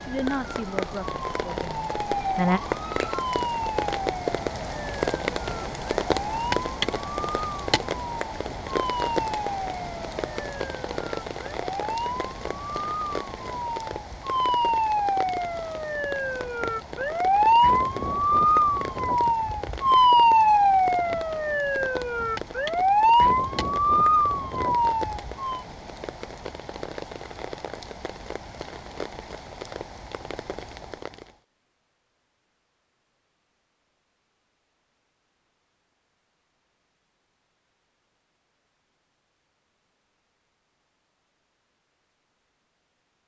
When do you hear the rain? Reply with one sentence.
You can hear the rain from 0.0 to 31.4 s.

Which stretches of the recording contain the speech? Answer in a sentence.
You can hear the speech from 0.1 to 2.6 s.